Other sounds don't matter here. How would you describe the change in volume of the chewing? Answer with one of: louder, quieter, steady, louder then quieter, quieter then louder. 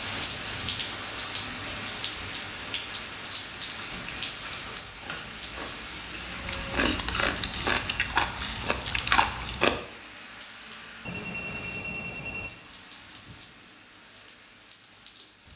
louder.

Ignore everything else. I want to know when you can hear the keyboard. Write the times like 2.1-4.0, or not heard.
not heard.